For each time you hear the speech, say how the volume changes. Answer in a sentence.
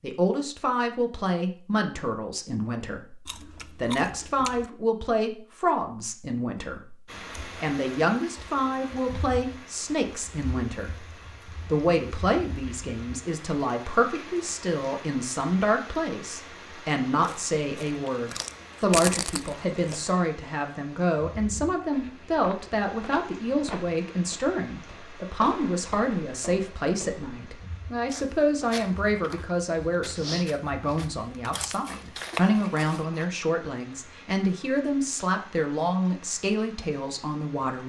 The speech can be heard from 0.0 to 11.1 s, at a steady volume; and from 11.7 to 37.8 s, at a steady volume.